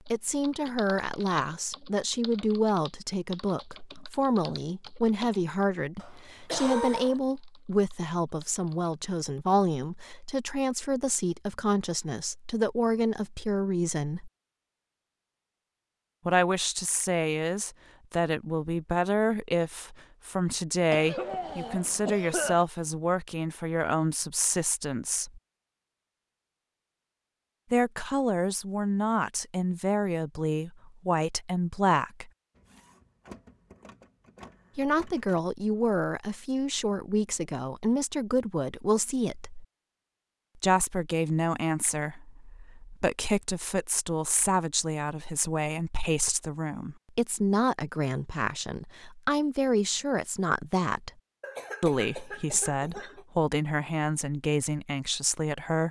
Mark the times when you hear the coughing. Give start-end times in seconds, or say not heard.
6.0-7.2, 20.9-22.6, 51.4-53.2.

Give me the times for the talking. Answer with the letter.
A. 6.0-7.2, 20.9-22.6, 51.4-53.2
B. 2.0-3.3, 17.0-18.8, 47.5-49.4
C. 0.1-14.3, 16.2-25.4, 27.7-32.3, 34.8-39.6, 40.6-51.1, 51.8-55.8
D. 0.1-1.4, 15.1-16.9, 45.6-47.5
C.